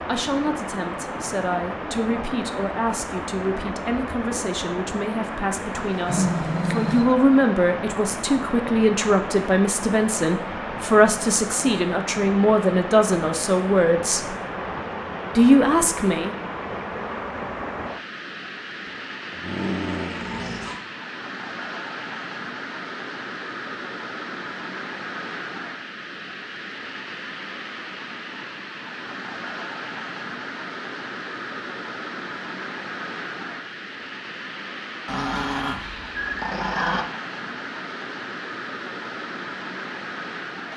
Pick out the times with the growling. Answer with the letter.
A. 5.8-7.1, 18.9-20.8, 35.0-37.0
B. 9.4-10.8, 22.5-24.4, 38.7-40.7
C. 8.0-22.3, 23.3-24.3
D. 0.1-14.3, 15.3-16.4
A.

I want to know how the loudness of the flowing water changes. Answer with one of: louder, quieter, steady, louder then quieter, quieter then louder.
steady.